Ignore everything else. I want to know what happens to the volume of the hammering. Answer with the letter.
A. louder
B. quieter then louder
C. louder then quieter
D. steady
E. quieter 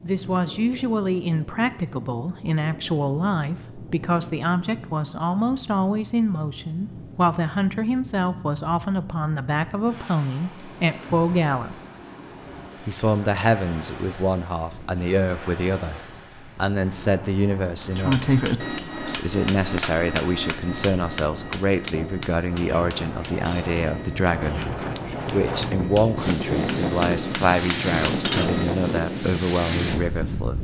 B.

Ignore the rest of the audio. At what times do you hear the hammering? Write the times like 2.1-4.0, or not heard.
17.9-28.6.